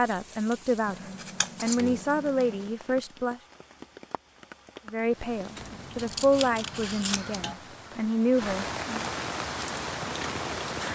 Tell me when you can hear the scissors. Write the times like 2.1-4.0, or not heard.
0.8-2.8, 5.5-7.5.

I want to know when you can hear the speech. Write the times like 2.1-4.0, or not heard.
0.0-3.4, 4.8-9.1.